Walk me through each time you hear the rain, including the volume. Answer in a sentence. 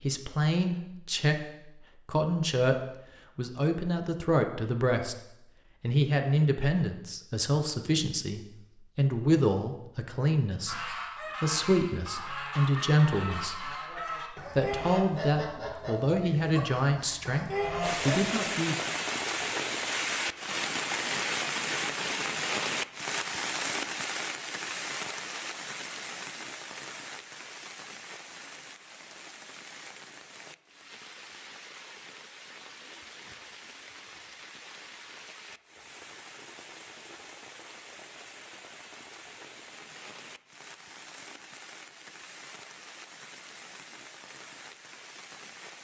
The rain can be heard from 17.8 to 45.7 s, getting quieter.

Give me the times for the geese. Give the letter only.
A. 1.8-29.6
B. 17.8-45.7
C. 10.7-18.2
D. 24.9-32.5
C.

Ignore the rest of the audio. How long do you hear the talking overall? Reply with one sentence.
The talking can be heard for 18 seconds in total.